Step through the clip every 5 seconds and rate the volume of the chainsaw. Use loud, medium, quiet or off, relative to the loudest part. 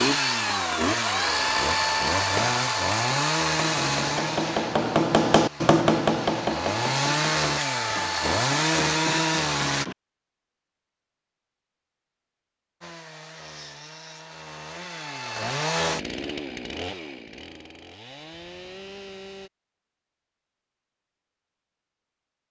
loud, loud, quiet, medium, off.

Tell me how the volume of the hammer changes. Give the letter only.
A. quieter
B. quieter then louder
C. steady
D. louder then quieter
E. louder
D.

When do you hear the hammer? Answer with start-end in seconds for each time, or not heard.
2.1-9.9.